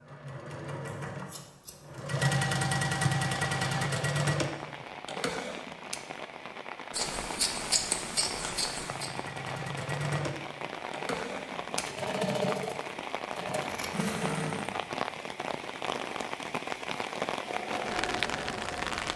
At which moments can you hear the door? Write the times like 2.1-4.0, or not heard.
not heard.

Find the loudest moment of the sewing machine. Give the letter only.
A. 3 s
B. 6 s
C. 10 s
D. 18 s
A.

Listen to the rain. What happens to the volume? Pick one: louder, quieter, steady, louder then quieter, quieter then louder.
louder.